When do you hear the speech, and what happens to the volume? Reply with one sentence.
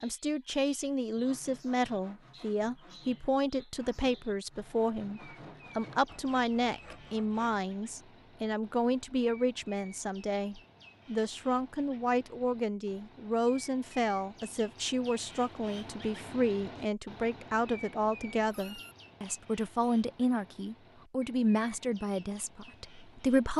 The speech can be heard from 0.0 to 23.5 s, at a steady volume.